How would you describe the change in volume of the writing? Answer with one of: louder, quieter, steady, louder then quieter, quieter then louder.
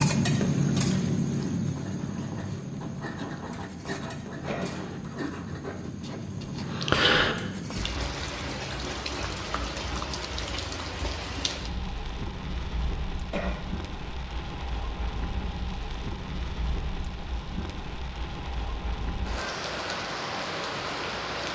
louder.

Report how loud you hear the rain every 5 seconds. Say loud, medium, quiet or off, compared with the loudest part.
loud, medium, medium, medium, loud.